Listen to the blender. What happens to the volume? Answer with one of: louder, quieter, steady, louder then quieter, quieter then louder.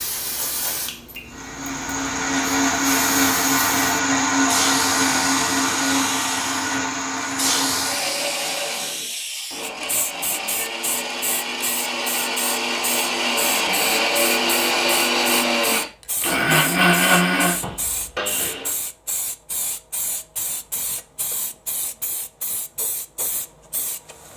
quieter then louder.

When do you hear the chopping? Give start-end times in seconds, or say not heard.
not heard.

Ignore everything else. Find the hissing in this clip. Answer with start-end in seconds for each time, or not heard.
0.0-24.3.